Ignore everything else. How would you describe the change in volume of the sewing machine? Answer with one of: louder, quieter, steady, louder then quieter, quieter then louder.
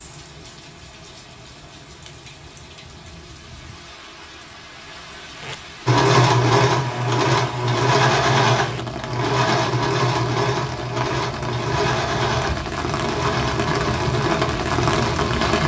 quieter.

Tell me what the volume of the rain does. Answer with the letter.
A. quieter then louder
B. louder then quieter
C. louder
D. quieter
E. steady
C.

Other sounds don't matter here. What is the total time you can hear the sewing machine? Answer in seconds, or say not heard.
10 s.